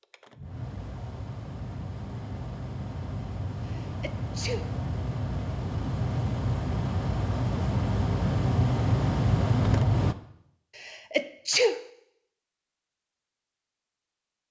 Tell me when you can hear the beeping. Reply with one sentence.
You can't hear the beeping here.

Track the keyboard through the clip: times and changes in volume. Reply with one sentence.
The keyboard can't be heard in this clip.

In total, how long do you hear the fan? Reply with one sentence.
The fan can be heard for 10 seconds in total.